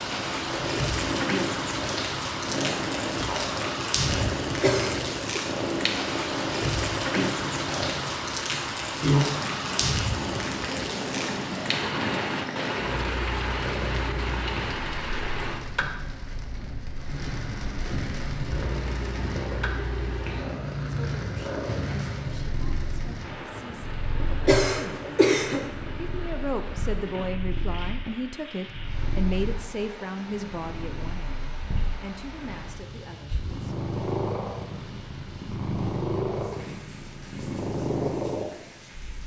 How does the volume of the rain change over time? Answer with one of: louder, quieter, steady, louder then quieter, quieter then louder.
quieter.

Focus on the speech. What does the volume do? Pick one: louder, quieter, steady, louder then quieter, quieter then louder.
louder then quieter.